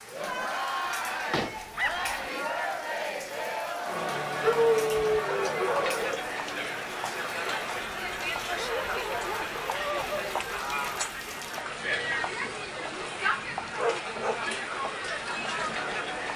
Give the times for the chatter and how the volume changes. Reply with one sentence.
You can hear the chatter from 0.0 to 16.3 s, at a steady volume.